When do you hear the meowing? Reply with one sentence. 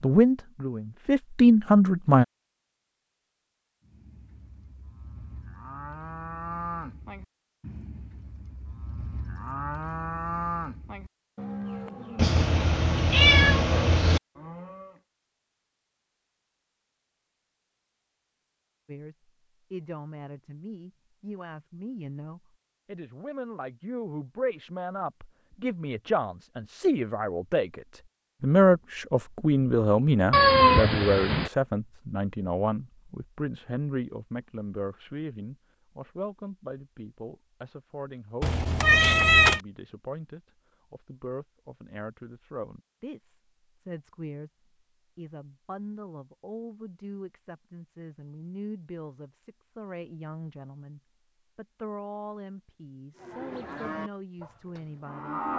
You can hear the meowing from 12.2 to 14.2 s, from 30.3 to 31.5 s and from 38.4 to 39.6 s.